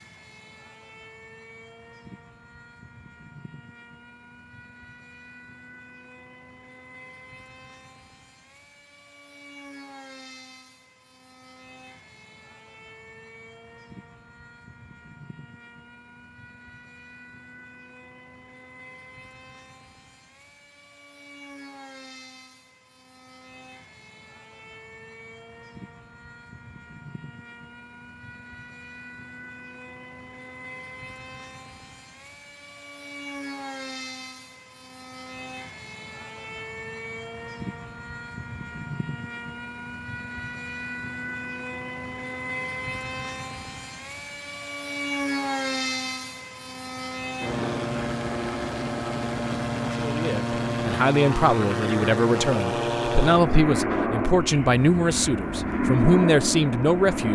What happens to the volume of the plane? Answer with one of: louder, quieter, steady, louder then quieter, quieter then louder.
louder.